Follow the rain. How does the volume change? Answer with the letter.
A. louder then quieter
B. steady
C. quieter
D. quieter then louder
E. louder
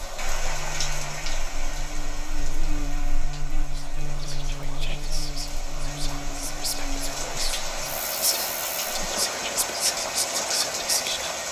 D.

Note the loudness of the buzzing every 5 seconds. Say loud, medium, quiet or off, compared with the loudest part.
loud, loud, off.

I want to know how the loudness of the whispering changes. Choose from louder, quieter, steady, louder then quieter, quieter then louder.
louder.